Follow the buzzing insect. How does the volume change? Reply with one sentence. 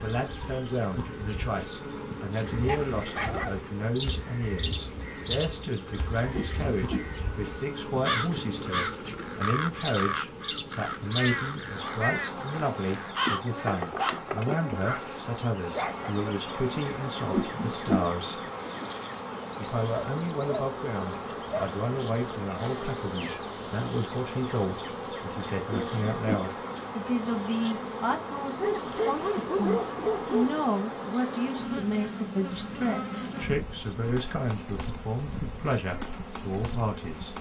The loudness of the buzzing insect stays about the same.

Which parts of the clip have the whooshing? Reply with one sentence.
You can hear the whooshing from 6.3 to 7.1 s, from 17.3 to 18.1 s and from 25.7 to 26.4 s.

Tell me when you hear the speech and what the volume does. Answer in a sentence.
You can hear the speech from 0.0 to 18.4 s, at a steady volume; and from 19.6 to 37.3 s, at a steady volume.